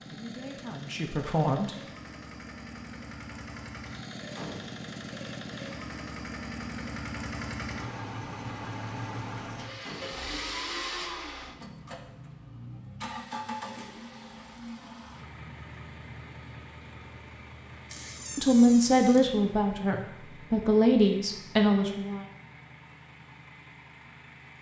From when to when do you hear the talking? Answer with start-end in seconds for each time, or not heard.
0.1-1.8, 18.4-22.2.